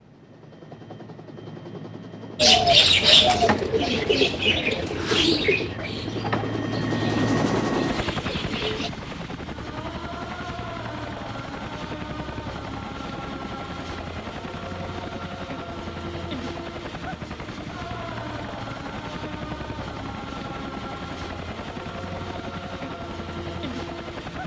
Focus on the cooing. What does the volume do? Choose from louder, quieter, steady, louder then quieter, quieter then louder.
quieter.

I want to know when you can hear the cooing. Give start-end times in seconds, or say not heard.
2.4-8.9.